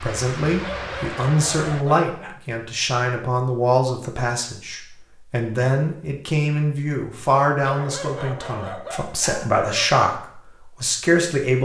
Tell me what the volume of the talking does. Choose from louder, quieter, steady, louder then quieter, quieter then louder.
steady.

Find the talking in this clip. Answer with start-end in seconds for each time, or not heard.
0.0-11.6.